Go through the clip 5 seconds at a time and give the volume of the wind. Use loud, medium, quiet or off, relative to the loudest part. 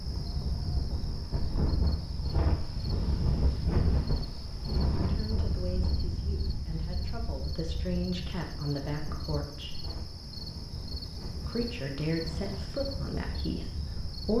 loud, medium, medium.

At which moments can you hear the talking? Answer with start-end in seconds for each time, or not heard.
5.0-9.8, 11.4-14.3.